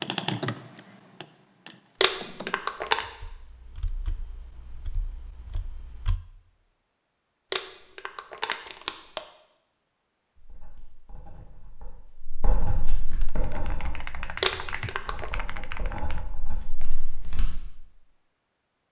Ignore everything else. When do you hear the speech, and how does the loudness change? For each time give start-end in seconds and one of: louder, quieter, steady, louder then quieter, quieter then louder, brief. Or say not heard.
not heard.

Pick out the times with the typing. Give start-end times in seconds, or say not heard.
0.0-6.2, 13.2-17.0.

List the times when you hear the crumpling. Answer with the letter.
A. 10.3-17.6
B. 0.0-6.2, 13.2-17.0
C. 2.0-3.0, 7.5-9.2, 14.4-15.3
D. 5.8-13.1
C.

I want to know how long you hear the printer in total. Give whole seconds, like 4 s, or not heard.
not heard.